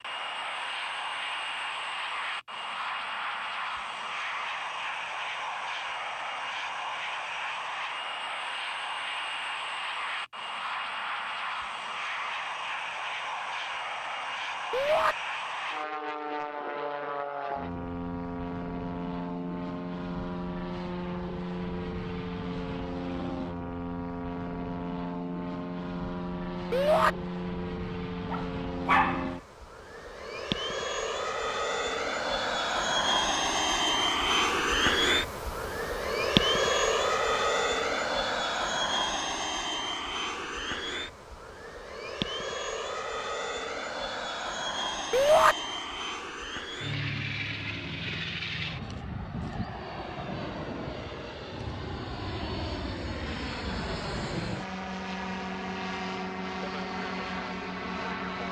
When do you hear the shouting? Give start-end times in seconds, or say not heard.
14.7-15.2, 26.7-27.1, 45.1-45.5.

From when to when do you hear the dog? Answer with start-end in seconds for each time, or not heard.
28.3-29.4.